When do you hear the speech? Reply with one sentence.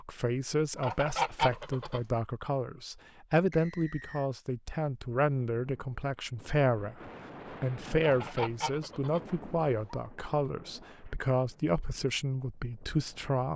The speech can be heard from 0.0 to 7.0 s and from 7.6 to 13.5 s.